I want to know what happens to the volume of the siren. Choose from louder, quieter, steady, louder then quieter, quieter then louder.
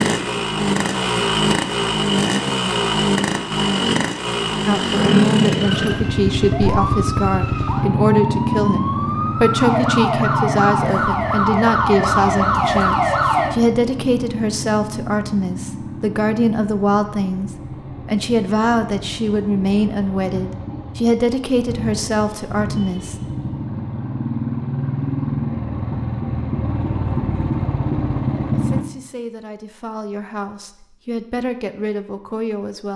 louder.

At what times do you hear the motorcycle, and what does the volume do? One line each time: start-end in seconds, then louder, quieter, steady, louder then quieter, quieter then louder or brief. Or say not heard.
0.0-28.9 quieter then louder.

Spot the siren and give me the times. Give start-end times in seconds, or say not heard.
5.8-13.6.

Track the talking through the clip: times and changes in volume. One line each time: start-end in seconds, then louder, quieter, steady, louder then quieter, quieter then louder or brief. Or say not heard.
4.7-23.1 steady
28.5-32.9 louder.